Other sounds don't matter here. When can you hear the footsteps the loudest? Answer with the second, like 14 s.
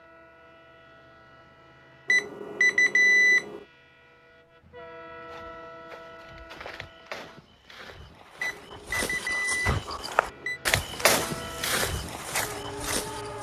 11 s.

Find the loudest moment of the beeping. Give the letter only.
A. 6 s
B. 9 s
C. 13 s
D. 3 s
D.